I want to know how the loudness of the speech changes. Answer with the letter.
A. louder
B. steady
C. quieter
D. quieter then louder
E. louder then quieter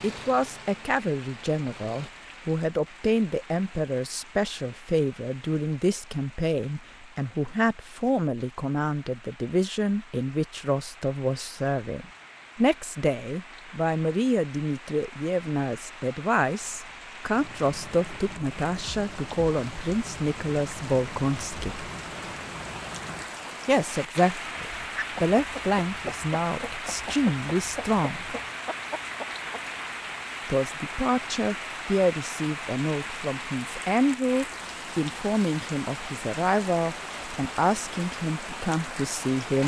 B.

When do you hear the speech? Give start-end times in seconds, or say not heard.
0.0-21.9, 23.6-28.4, 30.4-39.6.